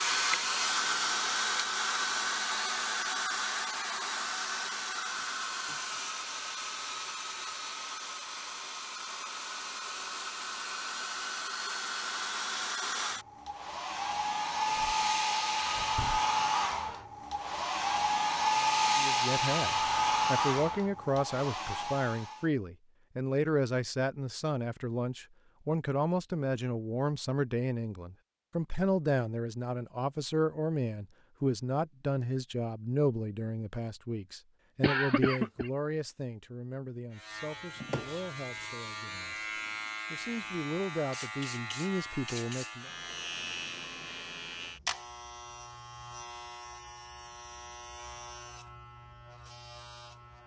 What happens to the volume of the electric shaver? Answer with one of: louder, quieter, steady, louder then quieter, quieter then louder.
quieter.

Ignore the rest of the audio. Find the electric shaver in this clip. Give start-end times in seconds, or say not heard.
37.1-50.4.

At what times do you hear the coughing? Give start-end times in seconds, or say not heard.
34.8-35.7.